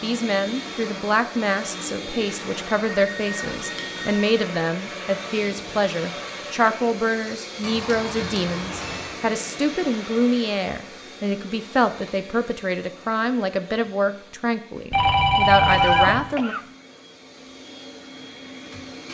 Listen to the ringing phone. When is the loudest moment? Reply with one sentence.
The volume of the ringing phone peaks at 16 seconds.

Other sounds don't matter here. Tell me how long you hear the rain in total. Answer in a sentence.
You can't hear the rain here.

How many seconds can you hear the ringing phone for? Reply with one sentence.
You can hear the ringing phone for 4 seconds altogether.